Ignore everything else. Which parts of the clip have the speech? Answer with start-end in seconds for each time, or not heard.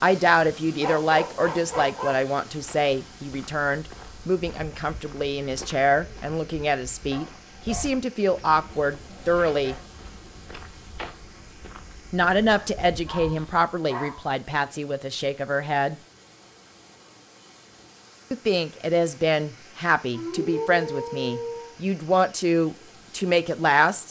0.0-9.8, 12.1-15.9, 18.3-24.0.